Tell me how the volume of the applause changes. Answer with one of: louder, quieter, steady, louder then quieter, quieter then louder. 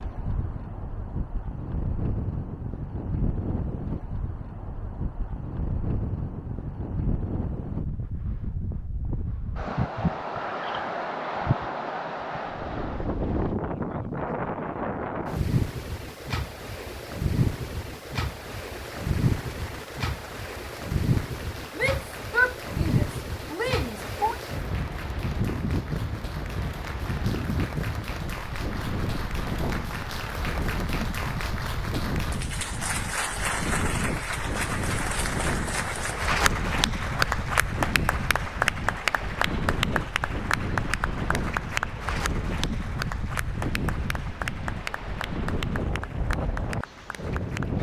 louder then quieter.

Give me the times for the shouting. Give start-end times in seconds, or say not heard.
21.8-24.4.